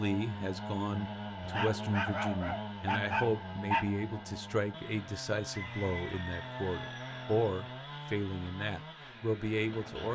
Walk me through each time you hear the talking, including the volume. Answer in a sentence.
The talking can be heard from 0.0 to 10.1 s, at a steady volume.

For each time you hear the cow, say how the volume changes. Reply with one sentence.
The cow can't be heard in this clip.